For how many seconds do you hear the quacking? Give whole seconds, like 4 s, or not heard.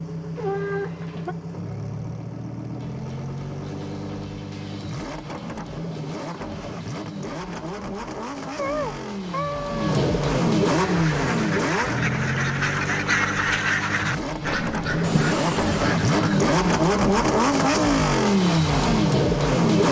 6 s.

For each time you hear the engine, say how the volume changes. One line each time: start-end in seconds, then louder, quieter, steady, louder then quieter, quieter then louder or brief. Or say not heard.
0.0-19.8 louder.